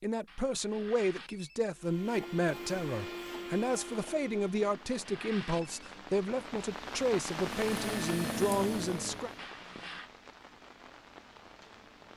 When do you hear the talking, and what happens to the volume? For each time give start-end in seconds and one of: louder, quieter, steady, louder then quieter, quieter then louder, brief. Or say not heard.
0.0-9.3 steady.